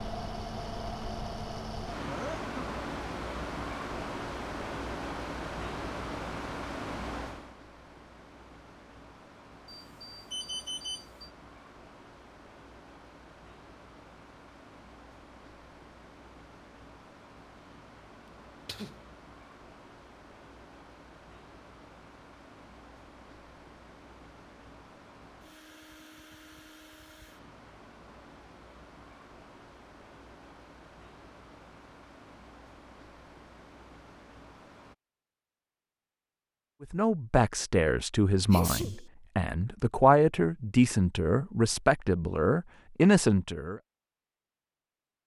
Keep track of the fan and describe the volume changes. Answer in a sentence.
The volume of the fan goes down.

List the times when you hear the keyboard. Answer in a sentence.
The keyboard can't be heard in this clip.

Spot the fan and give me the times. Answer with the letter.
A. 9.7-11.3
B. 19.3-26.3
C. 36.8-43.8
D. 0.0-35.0
D.